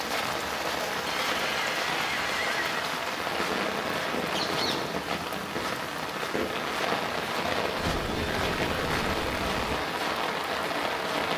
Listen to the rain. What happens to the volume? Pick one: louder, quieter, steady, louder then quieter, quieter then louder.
steady.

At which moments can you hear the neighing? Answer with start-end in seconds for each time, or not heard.
1.1-2.9, 7.8-9.8.